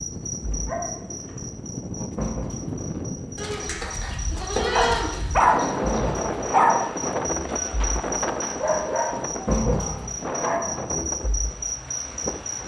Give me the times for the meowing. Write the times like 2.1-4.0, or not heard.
not heard.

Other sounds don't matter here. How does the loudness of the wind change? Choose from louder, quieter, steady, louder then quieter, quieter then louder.
louder then quieter.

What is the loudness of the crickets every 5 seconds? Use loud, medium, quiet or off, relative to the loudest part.
medium, loud, loud.